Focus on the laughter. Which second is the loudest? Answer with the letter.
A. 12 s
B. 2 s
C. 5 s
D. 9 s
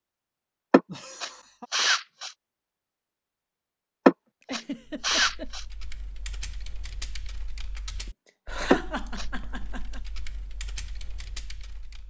D.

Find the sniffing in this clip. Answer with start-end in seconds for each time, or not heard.
0.7-2.3, 4.0-5.6, 8.7-9.2.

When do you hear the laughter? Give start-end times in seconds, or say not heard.
0.8-1.7, 4.4-5.5, 8.4-10.0.